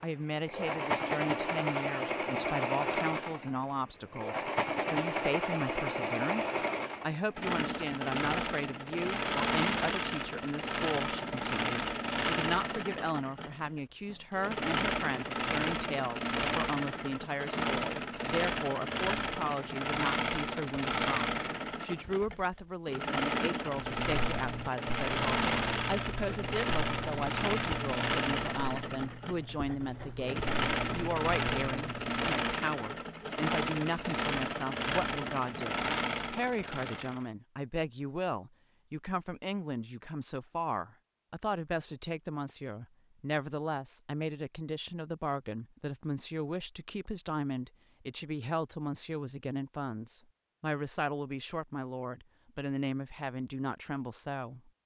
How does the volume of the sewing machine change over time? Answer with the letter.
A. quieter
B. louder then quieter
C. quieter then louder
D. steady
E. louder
D.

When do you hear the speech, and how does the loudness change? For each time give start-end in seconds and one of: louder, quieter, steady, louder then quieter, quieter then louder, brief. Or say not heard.
0.0-54.7 steady.